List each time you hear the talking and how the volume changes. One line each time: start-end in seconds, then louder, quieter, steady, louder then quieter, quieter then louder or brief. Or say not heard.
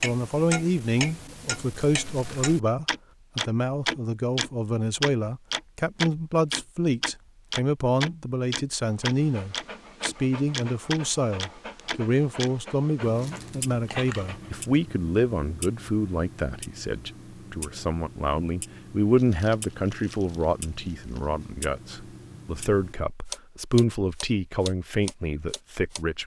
0.0-26.2 steady.